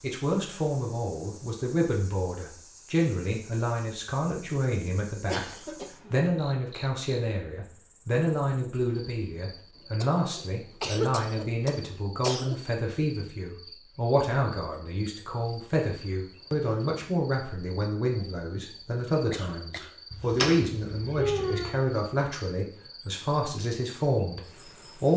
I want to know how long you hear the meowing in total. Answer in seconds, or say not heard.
2 s.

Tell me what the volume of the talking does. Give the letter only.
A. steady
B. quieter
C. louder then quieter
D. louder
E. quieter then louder
A.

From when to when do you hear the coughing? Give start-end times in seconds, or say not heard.
5.2-6.2, 10.0-12.6, 19.3-20.4.